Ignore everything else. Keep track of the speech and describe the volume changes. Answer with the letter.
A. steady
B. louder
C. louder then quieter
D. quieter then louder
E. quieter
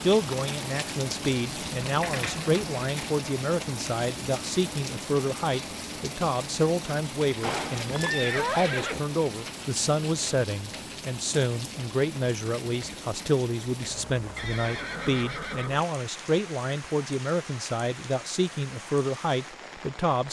A.